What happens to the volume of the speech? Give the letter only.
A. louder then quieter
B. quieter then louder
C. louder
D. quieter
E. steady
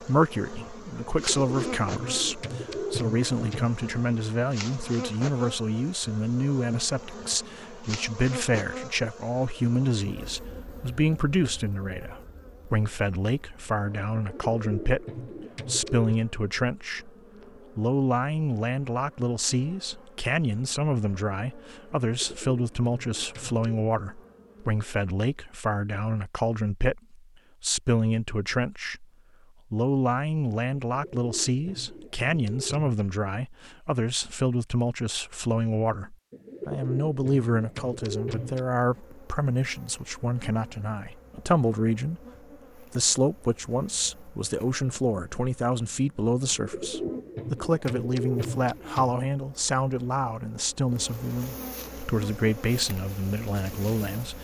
E.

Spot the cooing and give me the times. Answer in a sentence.
You can hear the cooing from 1.1 to 3.7 s, from 14.2 to 16.1 s, from 22.1 to 23.9 s, from 30.9 to 33.0 s, from 36.3 to 38.6 s and from 46.4 to 49.2 s.